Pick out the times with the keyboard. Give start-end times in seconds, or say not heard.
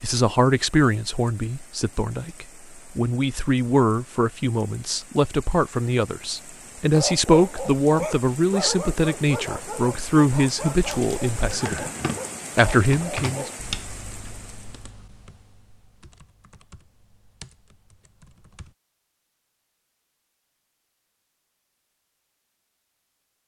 10.8-18.8.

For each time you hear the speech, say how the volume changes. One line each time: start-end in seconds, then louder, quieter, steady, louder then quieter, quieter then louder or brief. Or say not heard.
0.0-11.8 steady
12.6-13.4 brief.